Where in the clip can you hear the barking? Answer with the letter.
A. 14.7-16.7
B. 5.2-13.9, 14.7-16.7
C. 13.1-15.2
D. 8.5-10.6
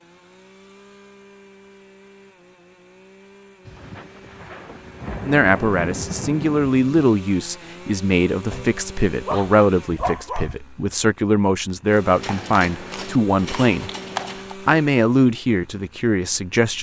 D.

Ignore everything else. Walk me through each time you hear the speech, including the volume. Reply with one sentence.
The speech can be heard from 5.2 to 13.9 s, at a steady volume; and briefly from 14.7 to 16.7 s.